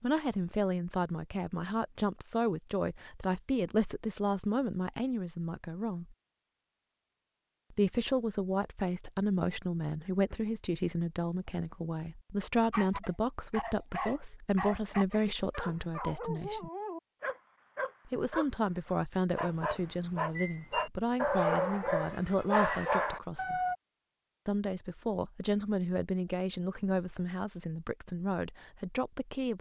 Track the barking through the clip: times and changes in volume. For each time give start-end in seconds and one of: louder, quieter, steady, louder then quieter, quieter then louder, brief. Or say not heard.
12.7-23.8 louder.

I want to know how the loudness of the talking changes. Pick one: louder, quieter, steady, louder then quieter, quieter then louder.
steady.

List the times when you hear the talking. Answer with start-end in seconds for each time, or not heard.
0.0-6.2, 7.7-16.7, 18.1-23.6, 24.4-29.5.